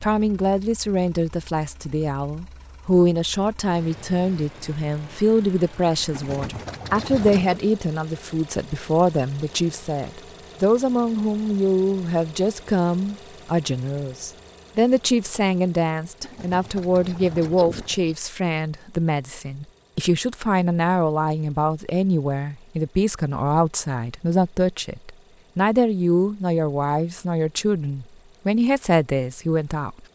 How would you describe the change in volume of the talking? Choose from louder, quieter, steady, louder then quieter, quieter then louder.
steady.